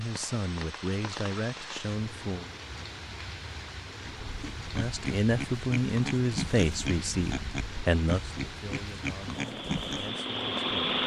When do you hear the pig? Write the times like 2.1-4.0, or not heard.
4.0-10.1.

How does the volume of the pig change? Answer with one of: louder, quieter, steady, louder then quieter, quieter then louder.
steady.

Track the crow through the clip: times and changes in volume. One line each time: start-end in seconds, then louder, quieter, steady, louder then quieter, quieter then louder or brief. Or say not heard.
not heard.